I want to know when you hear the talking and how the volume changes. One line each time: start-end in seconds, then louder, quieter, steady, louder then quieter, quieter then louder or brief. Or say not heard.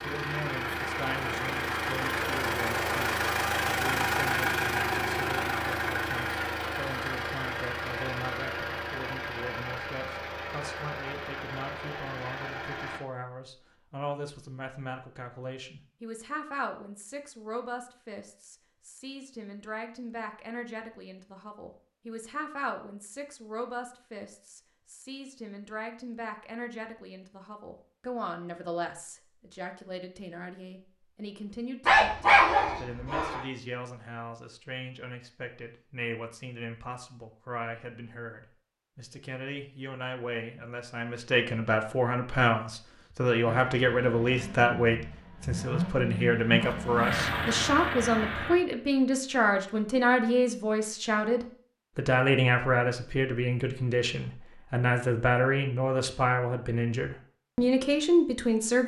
0.0-58.8 louder.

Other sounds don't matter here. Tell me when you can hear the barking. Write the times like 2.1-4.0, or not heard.
31.9-33.4.